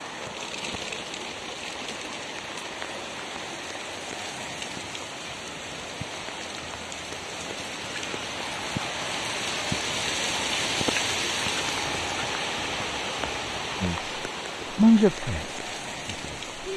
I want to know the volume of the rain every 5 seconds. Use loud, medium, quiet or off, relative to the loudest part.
medium, loud, loud, medium.